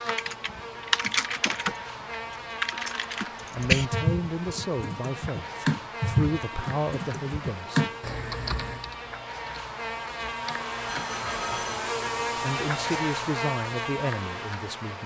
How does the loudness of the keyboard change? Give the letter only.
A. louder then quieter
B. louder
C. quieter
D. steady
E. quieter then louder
C.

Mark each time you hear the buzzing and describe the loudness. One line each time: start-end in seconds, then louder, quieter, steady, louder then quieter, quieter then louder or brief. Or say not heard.
0.0-15.0 louder.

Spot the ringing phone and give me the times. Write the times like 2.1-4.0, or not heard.
10.8-11.9.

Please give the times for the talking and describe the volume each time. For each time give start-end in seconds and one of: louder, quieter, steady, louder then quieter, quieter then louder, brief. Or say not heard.
3.5-7.8 quieter then louder
12.3-15.0 brief.